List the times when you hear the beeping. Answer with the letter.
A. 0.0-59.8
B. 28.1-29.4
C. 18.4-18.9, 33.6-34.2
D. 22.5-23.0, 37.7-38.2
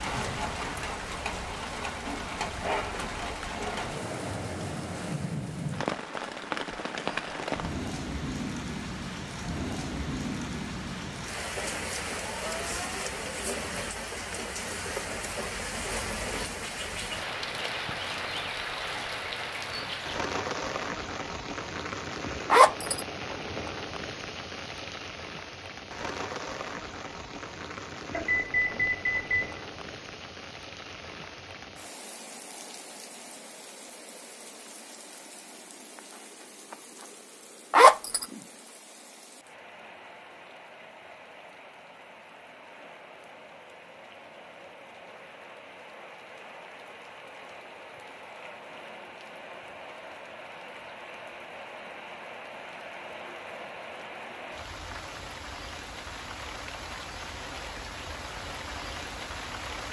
B.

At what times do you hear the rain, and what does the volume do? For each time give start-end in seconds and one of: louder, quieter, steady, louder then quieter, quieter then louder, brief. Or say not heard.
0.0-59.8 quieter then louder.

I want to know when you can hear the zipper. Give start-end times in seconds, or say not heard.
22.5-23.0, 37.7-38.2.